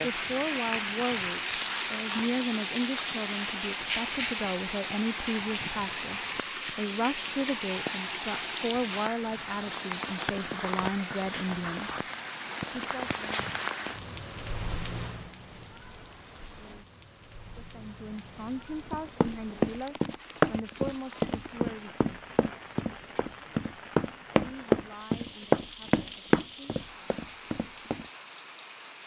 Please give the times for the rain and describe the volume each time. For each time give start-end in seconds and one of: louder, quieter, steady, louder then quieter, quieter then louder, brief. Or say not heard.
0.0-29.0 quieter.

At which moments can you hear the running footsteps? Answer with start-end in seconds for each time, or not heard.
18.9-28.1.